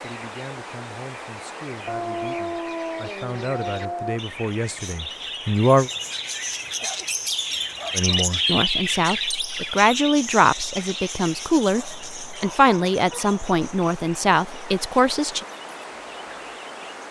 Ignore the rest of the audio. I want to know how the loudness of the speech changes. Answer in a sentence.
The volume of the speech goes up.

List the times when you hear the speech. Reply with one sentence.
The speech can be heard from 0.0 to 5.9 s and from 8.0 to 15.4 s.